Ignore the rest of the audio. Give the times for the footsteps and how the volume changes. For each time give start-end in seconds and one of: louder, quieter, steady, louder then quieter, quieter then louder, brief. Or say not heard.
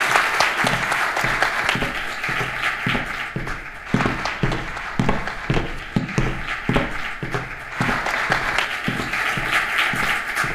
0.1-10.5 louder then quieter.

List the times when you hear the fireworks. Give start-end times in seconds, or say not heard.
not heard.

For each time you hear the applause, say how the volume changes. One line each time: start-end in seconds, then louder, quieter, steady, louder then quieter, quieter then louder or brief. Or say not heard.
0.0-10.5 quieter then louder.